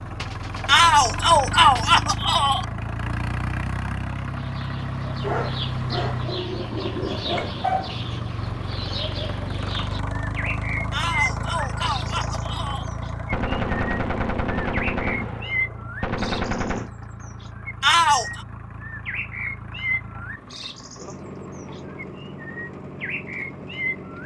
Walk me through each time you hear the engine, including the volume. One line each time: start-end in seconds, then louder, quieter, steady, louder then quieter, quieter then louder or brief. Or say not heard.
0.0-24.2 quieter.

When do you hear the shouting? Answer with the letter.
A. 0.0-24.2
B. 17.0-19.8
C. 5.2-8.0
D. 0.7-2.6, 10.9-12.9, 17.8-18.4
D.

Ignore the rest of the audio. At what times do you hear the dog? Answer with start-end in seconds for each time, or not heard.
5.2-8.0.